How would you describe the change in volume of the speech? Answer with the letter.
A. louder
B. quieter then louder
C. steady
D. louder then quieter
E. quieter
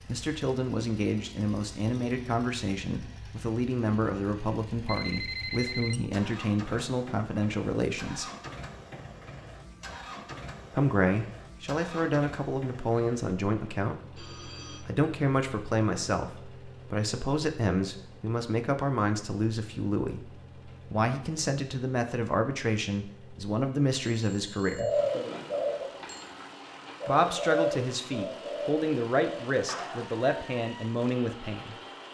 C.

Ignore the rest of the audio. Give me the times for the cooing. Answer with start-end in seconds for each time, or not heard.
24.8-30.2.